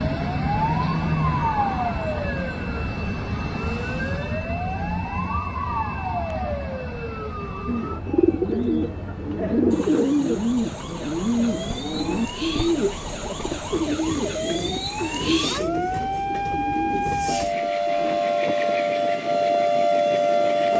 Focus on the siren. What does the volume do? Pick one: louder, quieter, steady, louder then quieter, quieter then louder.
quieter then louder.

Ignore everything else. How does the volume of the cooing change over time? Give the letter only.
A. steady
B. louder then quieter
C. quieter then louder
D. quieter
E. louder
D.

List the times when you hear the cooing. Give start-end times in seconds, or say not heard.
7.7-18.2.